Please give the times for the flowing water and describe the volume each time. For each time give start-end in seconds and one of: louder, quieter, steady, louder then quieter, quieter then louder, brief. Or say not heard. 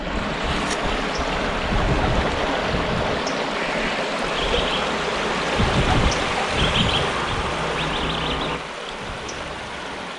0.0-10.1 quieter.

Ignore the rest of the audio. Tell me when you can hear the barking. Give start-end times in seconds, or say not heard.
1.6-3.3, 5.5-7.5.